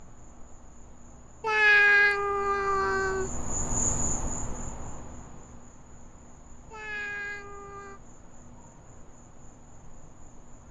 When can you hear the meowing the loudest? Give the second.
2 s.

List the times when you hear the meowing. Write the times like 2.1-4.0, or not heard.
1.4-3.3, 6.7-8.0.